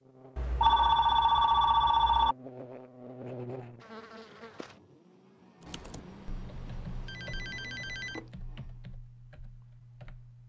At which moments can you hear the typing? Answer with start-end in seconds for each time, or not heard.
5.6-10.4.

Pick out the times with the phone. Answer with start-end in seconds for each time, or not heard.
0.3-2.4, 5.7-8.3.